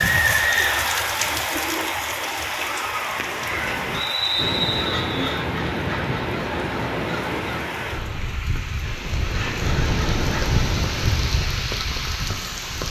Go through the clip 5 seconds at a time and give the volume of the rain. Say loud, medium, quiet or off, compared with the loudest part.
loud, medium, loud.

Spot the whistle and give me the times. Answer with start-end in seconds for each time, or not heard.
3.9-5.3.